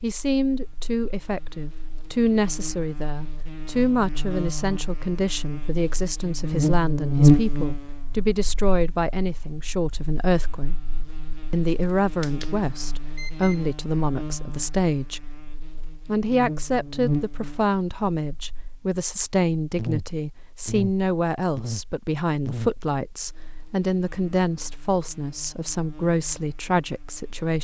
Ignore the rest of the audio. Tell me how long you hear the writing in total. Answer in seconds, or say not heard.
not heard.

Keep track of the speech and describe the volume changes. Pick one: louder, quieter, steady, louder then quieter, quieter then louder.
steady.